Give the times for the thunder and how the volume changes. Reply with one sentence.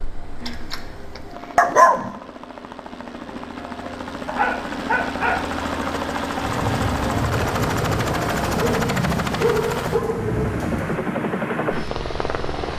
The thunder can be heard from 6.4 to 11.0 s, at a steady volume.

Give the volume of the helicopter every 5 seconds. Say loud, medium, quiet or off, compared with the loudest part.
medium, loud, loud.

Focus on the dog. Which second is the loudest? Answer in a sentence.
The volume of the dog peaks at 2 seconds.